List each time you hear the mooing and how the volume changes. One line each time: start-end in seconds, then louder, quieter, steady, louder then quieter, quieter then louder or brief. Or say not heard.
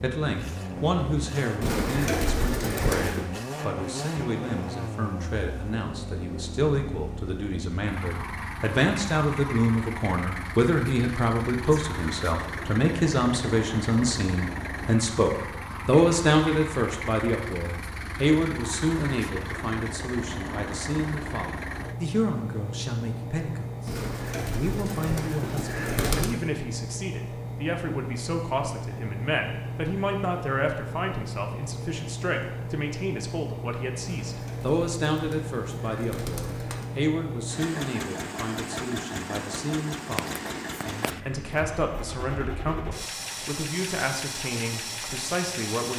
not heard.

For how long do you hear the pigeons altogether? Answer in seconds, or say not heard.
7 s.